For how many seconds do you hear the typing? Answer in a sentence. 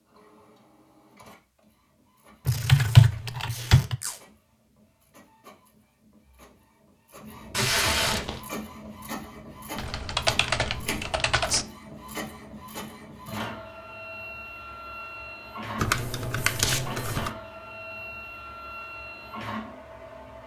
The typing can be heard for 5 seconds in total.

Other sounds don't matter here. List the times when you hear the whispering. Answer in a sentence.
The whispering can't be heard in this clip.